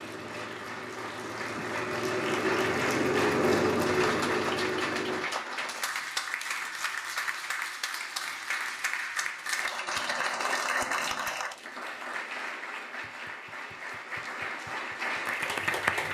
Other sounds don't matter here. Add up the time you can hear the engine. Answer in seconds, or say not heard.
5 s.